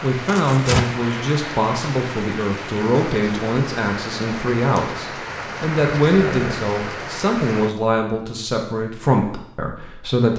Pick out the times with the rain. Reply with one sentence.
You can hear the rain from 0.0 to 7.8 s.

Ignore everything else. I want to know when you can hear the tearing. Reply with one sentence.
The tearing can be heard from 0.2 to 0.8 s and from 5.7 to 6.6 s.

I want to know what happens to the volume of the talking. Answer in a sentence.
The volume of the talking stays about the same.